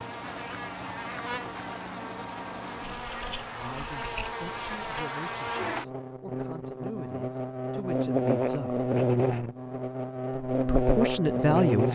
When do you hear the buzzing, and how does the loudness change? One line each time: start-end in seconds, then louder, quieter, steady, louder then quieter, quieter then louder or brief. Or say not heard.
0.0-11.8 louder.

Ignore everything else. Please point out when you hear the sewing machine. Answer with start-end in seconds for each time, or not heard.
0.0-3.0.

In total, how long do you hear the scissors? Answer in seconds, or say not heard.
2 s.